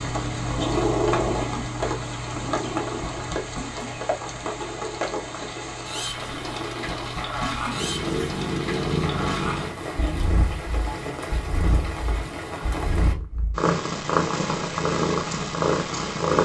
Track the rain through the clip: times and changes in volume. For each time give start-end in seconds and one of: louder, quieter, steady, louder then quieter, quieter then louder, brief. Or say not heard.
0.0-13.2 steady.